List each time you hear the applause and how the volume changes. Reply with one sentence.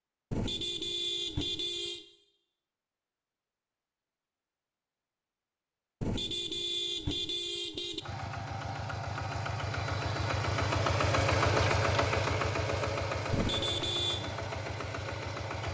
You can't hear the applause here.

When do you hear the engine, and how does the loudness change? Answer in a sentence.
The engine can be heard from 8.0 to 15.6 s, getting louder then quieter.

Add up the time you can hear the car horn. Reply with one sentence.
The car horn can be heard for 5 seconds in total.